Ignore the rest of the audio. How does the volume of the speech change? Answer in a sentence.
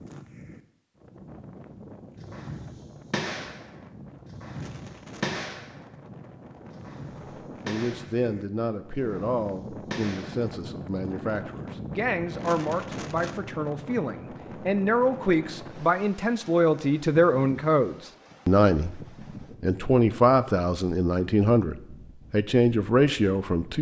The loudness of the speech goes up.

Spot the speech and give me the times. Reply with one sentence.
You can hear the speech from 7.7 to 19.0 s and from 19.6 to 23.7 s.